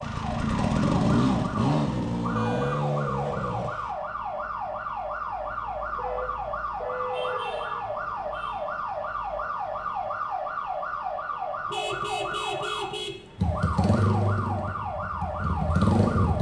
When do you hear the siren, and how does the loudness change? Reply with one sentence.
The siren can be heard from 0.0 to 16.3 s, at a steady volume.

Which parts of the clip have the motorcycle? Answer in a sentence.
The motorcycle can be heard from 0.0 to 4.0 s and from 13.3 to 16.3 s.